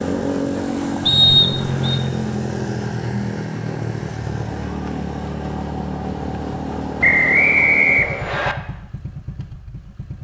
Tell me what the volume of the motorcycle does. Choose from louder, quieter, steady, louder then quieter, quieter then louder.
quieter.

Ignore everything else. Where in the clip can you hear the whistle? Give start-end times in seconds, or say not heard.
1.1-2.0, 7.0-8.6.